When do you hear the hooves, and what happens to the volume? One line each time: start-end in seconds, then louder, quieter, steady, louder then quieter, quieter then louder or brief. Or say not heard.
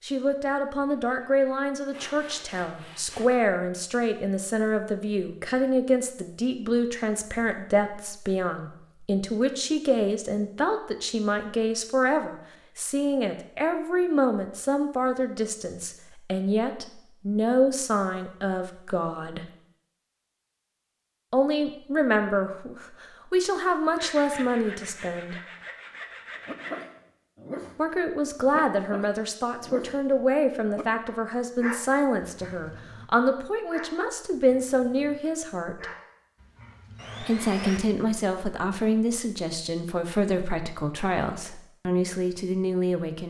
not heard.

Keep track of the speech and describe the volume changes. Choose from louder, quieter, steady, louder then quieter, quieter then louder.
steady.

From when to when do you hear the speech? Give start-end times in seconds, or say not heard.
0.0-19.4, 21.3-25.4, 27.8-35.9, 37.2-43.2.